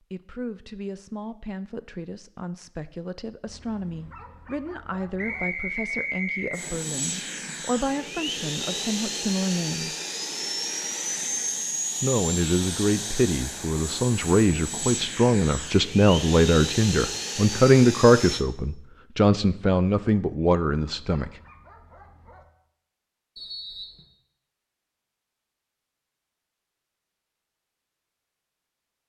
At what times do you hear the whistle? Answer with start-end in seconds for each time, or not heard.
5.2-6.7, 23.4-24.1.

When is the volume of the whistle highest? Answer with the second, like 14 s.
6 s.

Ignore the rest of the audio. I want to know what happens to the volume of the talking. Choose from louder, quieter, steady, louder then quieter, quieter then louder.
louder.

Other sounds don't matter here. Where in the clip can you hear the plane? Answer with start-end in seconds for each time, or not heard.
6.5-18.4.